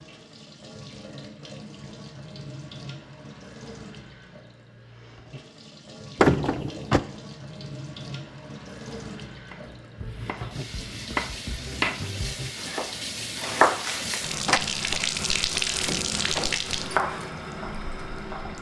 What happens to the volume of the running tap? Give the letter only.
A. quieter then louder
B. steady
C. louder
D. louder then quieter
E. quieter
C.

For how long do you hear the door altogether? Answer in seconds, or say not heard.
2 s.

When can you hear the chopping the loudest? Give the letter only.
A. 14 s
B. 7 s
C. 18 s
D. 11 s
A.